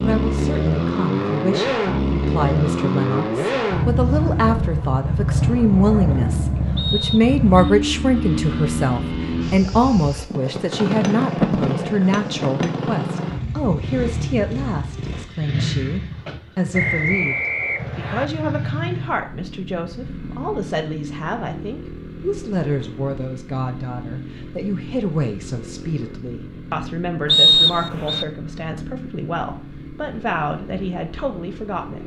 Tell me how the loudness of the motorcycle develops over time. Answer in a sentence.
The volume of the motorcycle goes down.